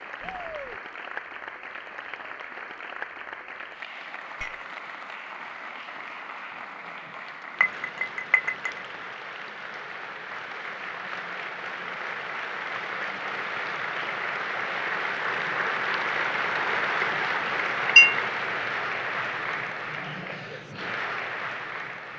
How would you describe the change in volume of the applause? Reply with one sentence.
The loudness of the applause goes up.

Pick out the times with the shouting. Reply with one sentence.
The shouting can be heard from 0.2 to 0.8 s.